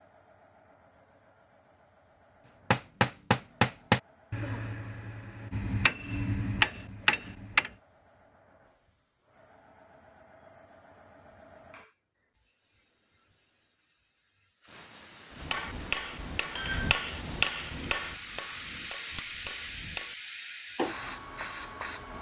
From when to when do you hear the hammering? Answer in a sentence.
You can hear the hammering from 2.7 to 7.7 s and from 15.3 to 20.1 s.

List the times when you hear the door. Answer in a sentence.
The door can't be heard in this clip.